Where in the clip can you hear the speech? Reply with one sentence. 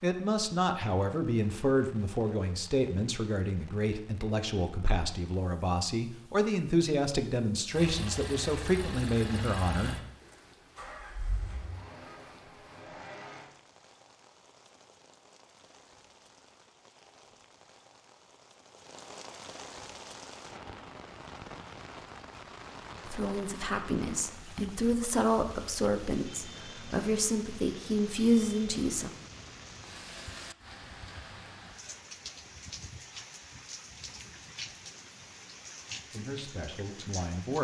You can hear the speech from 0.0 to 9.9 s, from 23.1 to 29.1 s and from 36.1 to 37.5 s.